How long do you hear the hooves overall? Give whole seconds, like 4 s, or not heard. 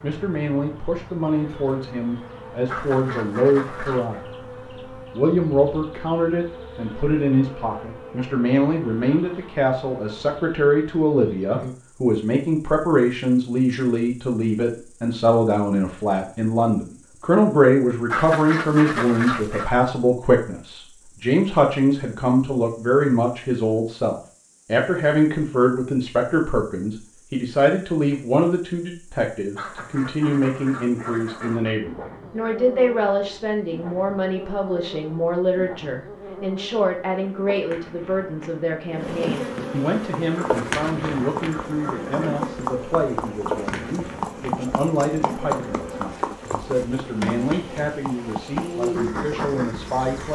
9 s.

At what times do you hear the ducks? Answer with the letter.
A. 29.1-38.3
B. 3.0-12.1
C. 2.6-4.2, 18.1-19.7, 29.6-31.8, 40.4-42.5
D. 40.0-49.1
C.